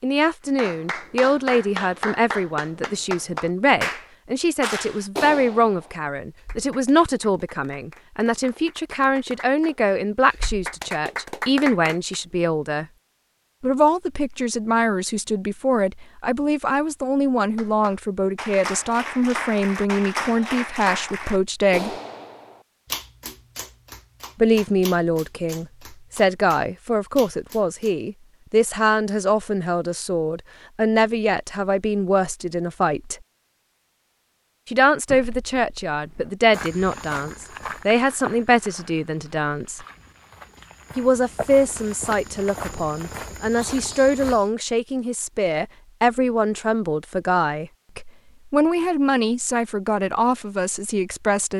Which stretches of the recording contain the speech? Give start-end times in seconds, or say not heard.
0.0-12.8, 13.6-21.9, 24.4-33.1, 34.6-39.8, 41.0-51.5.